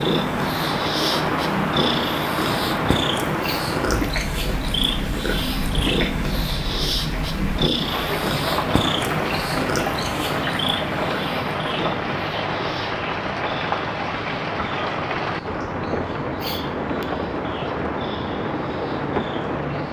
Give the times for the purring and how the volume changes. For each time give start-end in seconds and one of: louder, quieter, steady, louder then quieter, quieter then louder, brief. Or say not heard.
0.0-19.8 quieter.